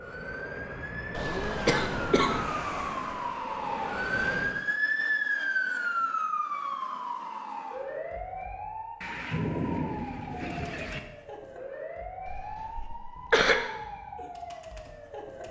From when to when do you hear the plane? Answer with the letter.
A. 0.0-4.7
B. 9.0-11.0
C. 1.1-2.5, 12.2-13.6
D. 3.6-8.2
A.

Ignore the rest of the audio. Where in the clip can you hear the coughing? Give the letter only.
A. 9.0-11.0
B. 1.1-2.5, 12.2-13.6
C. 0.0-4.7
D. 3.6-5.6
B.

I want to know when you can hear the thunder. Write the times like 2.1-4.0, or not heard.
9.0-11.0.